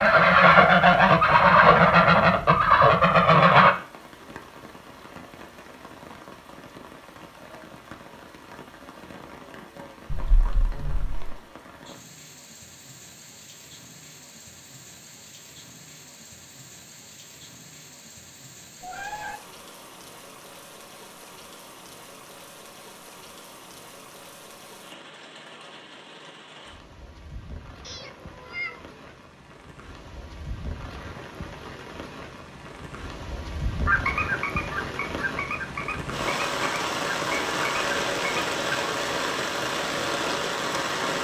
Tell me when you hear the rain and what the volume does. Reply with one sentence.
You can hear the rain from 0.0 to 41.1 s, getting louder.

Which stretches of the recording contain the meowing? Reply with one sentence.
You can hear the meowing from 10.1 to 11.3 s, from 18.8 to 19.4 s and from 27.8 to 28.9 s.